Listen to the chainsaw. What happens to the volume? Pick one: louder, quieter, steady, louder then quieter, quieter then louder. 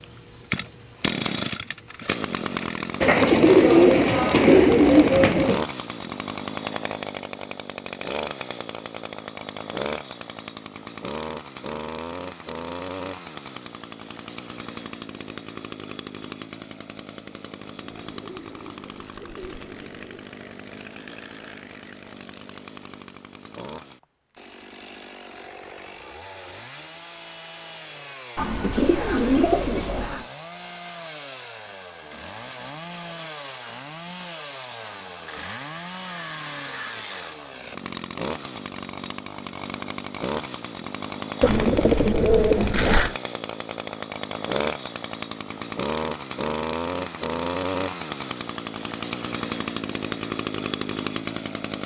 quieter then louder.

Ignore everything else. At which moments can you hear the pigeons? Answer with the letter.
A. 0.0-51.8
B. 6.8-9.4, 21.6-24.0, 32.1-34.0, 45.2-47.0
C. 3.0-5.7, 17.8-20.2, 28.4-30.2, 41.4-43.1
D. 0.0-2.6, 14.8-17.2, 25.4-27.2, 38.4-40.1
C.